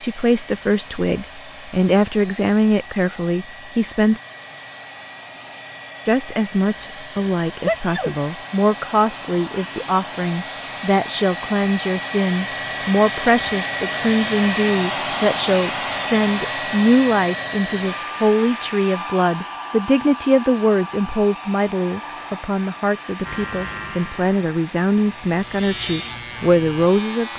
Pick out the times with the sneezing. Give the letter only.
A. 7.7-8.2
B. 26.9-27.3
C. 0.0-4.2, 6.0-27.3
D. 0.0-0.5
A.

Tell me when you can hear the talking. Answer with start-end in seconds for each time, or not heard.
0.0-4.2, 6.0-27.3.